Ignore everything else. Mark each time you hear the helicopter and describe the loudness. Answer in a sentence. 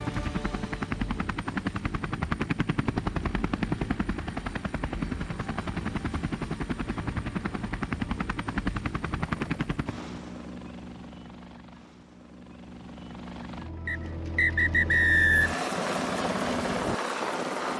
You can hear the helicopter from 0.0 to 17.7 s, getting quieter then louder.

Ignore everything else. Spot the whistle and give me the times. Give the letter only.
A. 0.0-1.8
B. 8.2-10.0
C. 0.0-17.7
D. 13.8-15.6
D.